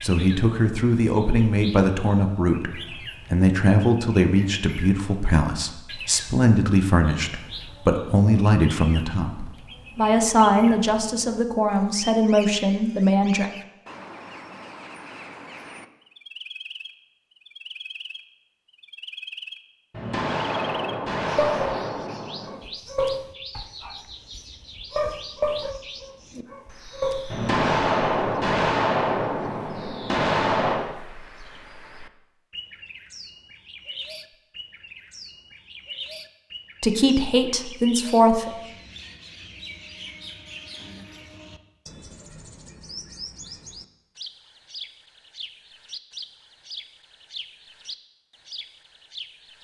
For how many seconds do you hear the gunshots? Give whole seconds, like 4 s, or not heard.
6 s.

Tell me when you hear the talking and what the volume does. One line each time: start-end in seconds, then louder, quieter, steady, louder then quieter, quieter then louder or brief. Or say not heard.
0.0-13.4 steady
36.8-38.5 brief.